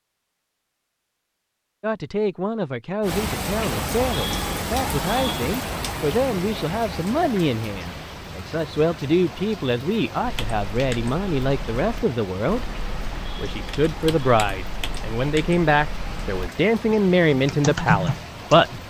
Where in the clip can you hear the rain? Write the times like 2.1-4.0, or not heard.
3.0-18.8.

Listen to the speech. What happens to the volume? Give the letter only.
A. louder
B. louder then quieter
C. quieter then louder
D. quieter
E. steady
A.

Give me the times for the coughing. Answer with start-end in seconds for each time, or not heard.
not heard.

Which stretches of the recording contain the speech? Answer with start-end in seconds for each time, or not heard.
1.8-12.7, 13.3-18.6.